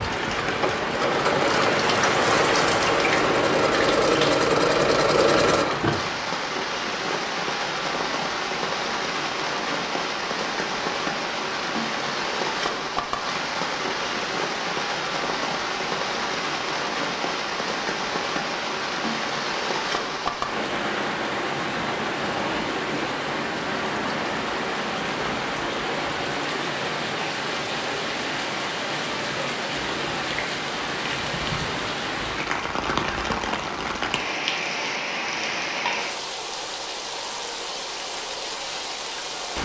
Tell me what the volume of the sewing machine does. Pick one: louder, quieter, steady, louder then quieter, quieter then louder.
louder.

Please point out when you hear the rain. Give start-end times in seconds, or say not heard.
0.0-39.6.